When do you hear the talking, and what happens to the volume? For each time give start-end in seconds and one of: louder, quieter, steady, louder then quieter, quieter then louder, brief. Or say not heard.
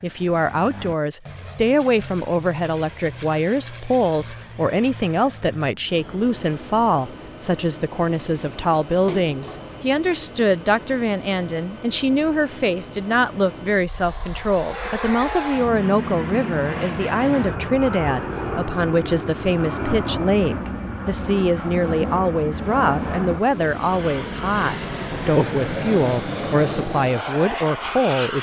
0.0-28.3 steady.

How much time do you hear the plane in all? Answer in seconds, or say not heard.
28 s.